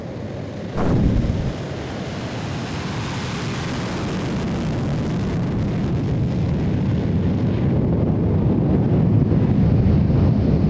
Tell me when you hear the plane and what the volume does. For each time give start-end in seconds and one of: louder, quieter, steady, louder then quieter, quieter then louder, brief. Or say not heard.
0.0-10.6 louder.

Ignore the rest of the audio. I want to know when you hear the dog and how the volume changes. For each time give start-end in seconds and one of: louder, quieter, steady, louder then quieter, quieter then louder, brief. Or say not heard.
not heard.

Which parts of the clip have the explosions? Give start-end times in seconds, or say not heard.
0.7-1.6.